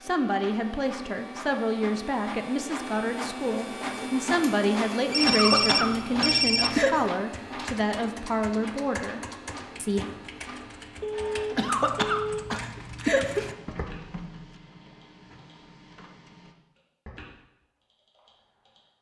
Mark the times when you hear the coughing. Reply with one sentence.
You can hear the coughing from 5.2 to 7.1 s and from 11.6 to 13.6 s.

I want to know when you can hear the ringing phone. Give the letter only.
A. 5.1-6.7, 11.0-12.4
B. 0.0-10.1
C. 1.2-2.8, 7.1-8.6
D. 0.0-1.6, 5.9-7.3
A.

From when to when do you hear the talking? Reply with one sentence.
The talking can be heard from 0.0 to 10.1 s.